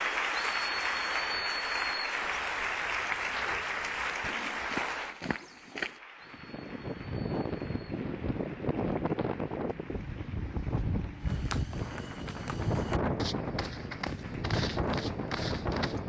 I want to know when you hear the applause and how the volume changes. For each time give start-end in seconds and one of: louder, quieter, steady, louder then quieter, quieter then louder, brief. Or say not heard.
0.0-16.0 quieter.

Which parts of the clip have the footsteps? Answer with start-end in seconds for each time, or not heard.
0.1-6.0, 11.2-16.0.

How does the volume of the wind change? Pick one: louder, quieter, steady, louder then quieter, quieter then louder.
steady.